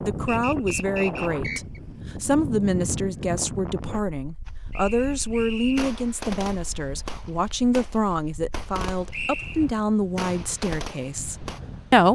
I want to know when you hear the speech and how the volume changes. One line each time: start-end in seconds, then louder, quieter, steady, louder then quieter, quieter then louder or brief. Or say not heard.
0.0-12.1 steady.